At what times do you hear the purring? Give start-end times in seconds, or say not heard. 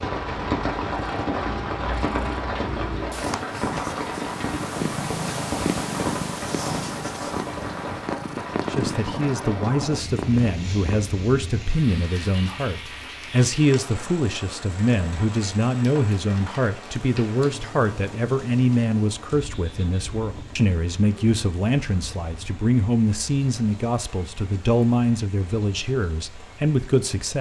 0.2-11.2.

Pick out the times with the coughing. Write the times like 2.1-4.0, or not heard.
not heard.